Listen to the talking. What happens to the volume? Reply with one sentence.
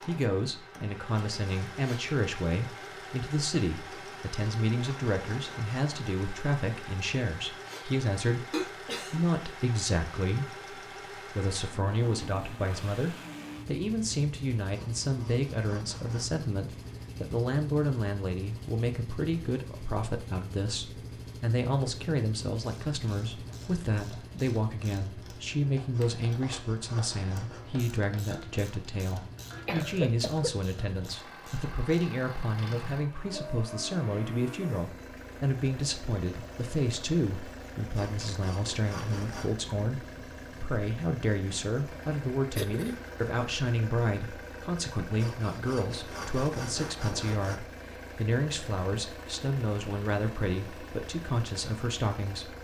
The loudness of the talking stays about the same.